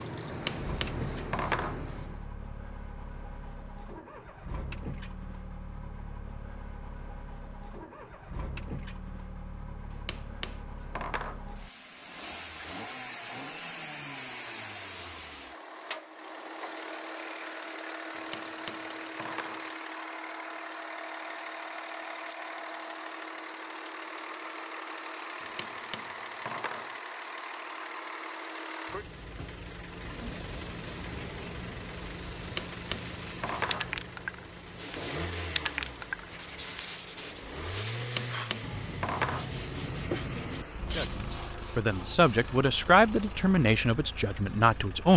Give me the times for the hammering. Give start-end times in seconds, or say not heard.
0.2-1.8, 9.9-11.4, 18.1-19.6, 25.4-26.9, 32.4-33.9, 38.0-39.5.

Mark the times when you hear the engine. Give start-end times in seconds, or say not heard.
0.0-45.1.